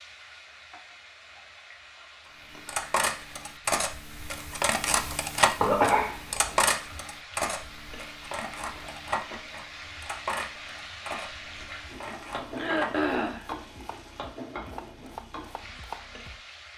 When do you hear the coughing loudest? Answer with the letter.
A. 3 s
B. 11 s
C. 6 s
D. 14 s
C.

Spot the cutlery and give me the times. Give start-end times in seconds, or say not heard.
2.5-13.1.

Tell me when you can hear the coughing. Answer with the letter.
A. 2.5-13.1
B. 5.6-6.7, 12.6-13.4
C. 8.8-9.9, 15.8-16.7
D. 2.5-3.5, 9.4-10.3
B.